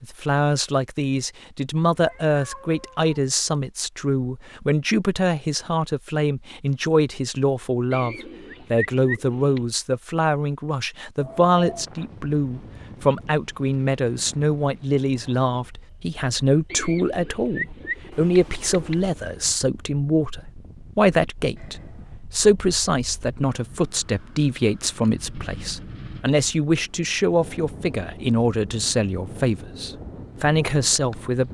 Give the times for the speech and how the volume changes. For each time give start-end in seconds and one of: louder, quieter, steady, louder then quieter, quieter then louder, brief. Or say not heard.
0.0-31.4 steady.